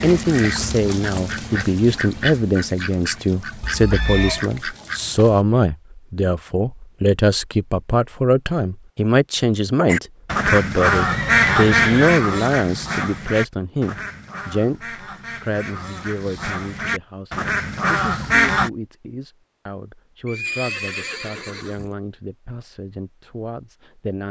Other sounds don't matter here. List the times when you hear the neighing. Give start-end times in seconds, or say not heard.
3.6-4.5, 10.9-12.2, 20.2-21.9.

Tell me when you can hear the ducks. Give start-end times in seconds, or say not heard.
0.0-5.5, 9.8-18.7.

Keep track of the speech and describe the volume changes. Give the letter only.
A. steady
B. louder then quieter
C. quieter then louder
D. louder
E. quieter
E.